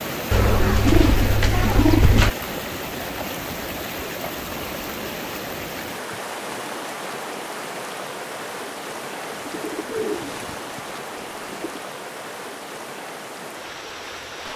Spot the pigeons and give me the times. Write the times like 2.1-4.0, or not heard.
0.3-2.3, 9.3-11.8.